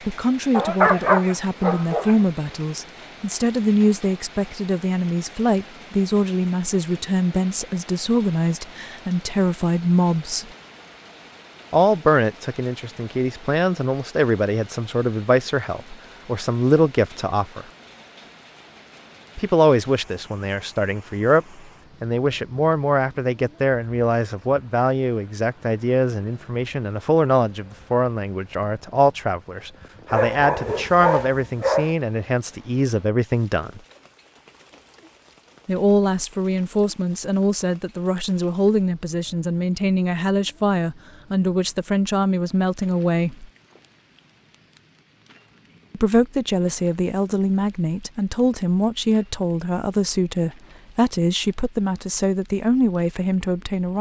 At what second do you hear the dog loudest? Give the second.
1 s.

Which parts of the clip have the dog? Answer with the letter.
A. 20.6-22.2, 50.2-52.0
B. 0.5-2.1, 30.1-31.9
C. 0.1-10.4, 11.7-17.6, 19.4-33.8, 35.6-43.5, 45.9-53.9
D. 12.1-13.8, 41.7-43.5
B.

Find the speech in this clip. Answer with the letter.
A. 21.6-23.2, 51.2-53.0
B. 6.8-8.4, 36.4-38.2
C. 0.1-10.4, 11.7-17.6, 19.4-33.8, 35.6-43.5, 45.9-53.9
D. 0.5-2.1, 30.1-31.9
C.